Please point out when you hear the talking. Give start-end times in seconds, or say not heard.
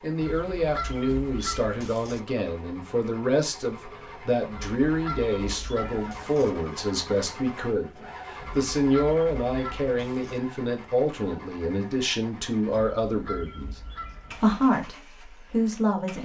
0.0-13.8, 14.4-16.2.